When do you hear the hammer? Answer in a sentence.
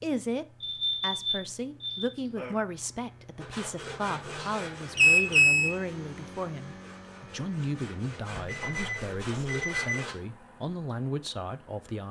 The hammer can't be heard in this clip.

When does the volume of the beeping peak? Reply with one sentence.
The volume of the beeping peaks at 5 seconds.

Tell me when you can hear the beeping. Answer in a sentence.
You can hear the beeping from 0.6 to 2.5 s, from 5.0 to 5.7 s and from 8.3 to 10.1 s.